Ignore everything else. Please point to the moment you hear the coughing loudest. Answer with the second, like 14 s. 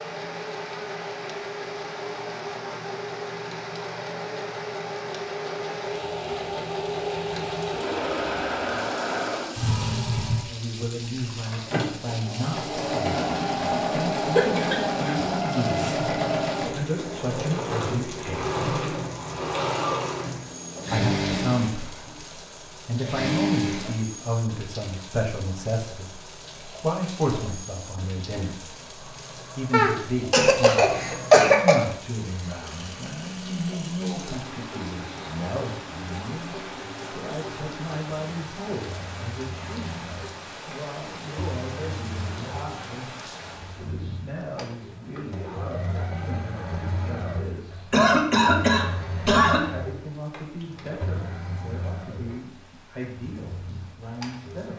31 s.